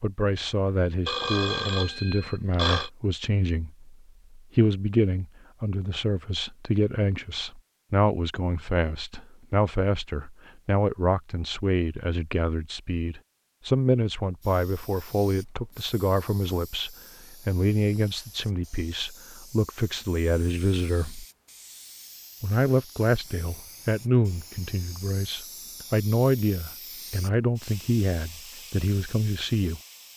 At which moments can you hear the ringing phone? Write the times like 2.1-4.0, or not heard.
1.1-2.9.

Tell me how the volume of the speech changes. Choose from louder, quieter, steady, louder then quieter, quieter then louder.
steady.